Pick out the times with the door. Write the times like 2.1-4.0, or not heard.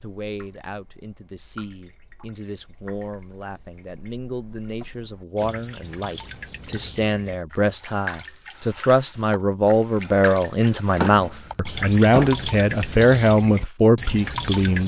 4.8-5.7, 10.9-12.5.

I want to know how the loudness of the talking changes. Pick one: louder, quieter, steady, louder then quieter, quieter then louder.
louder.